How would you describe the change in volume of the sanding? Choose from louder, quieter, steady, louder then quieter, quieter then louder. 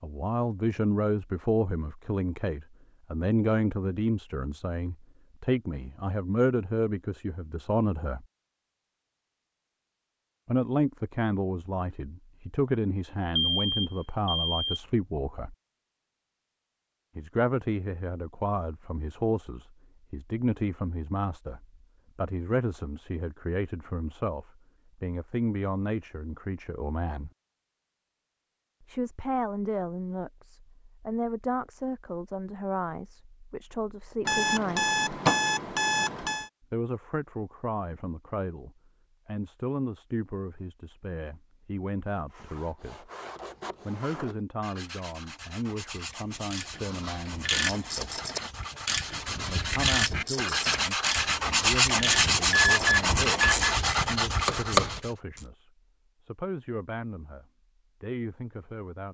louder.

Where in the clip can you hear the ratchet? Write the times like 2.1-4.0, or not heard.
46.5-55.5.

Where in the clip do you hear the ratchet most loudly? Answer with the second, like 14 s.
55 s.